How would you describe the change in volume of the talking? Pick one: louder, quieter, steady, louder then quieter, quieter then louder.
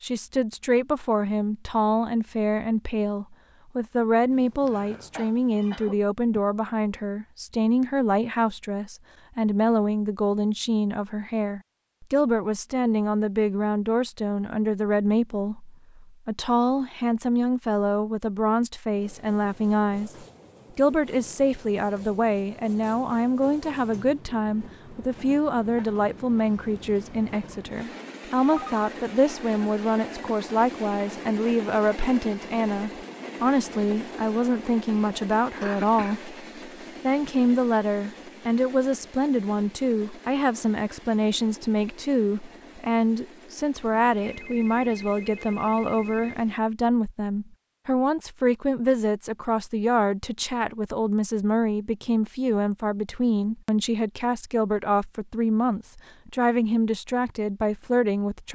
steady.